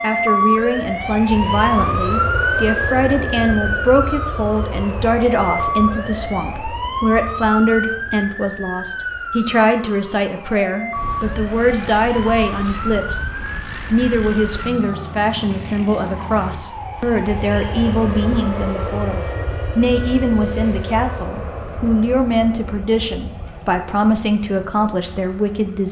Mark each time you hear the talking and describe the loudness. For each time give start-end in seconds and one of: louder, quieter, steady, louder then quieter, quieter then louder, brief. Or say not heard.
0.0-13.3 steady
13.9-25.8 steady.